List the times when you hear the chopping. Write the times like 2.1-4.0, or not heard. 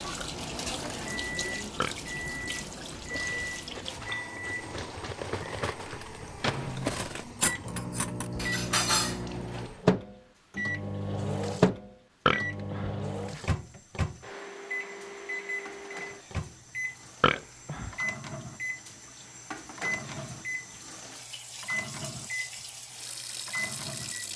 not heard.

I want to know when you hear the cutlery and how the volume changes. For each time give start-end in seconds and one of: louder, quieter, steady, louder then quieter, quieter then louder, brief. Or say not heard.
3.0-9.7 louder.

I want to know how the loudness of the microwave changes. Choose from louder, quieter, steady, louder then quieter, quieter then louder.
louder then quieter.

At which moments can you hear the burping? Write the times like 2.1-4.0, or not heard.
1.8-2.5, 12.2-13.6, 17.2-17.9.